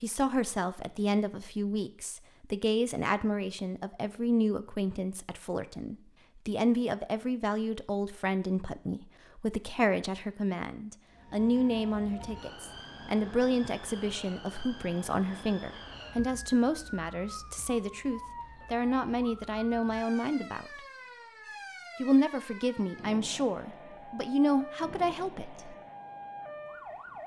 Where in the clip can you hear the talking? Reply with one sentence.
You can hear the talking from 0.0 to 20.8 s and from 22.0 to 25.8 s.